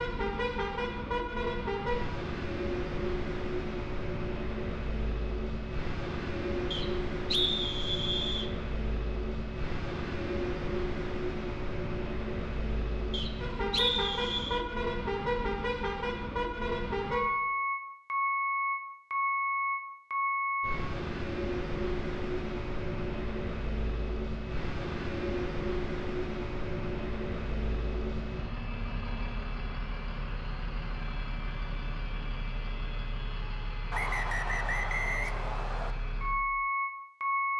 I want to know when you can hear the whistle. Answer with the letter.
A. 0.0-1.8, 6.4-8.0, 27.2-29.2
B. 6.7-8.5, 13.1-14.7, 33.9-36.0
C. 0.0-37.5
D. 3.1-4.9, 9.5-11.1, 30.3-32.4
B.